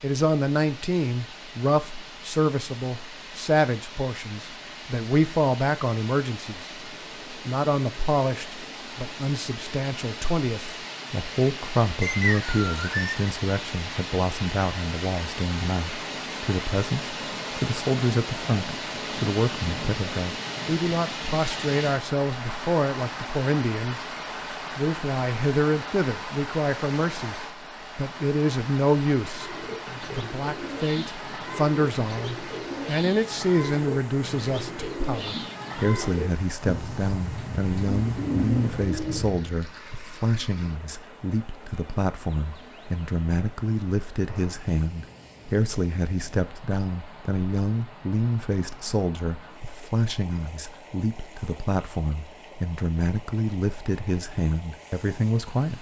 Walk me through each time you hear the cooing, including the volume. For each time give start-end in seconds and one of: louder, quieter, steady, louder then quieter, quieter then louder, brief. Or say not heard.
29.3-39.4 louder.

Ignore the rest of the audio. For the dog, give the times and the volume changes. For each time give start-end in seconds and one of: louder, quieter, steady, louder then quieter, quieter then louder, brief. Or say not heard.
not heard.